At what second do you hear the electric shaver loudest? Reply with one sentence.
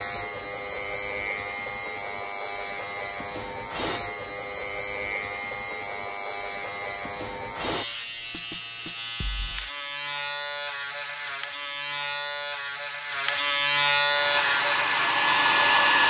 The volume of the electric shaver peaks at 14 seconds.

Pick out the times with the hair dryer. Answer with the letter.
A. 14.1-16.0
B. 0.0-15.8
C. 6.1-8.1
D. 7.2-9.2
A.